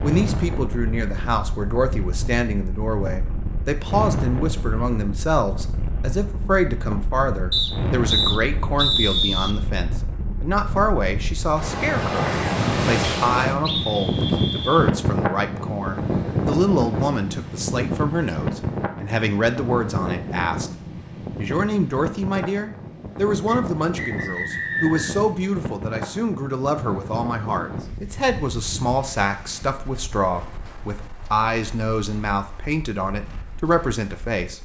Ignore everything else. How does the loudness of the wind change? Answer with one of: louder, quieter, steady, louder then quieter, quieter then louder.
louder then quieter.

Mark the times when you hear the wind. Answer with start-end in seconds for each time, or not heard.
0.0-34.6.